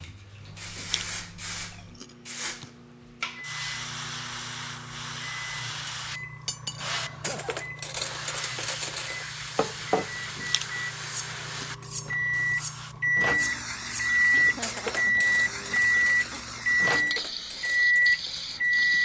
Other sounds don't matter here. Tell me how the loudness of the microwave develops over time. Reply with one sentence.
The volume of the microwave goes up.